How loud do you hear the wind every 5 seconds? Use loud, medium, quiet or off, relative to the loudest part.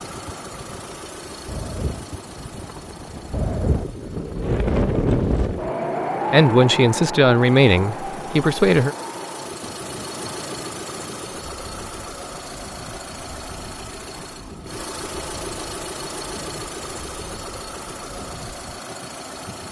loud, loud, quiet, quiet.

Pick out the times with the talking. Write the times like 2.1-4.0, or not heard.
6.3-8.9.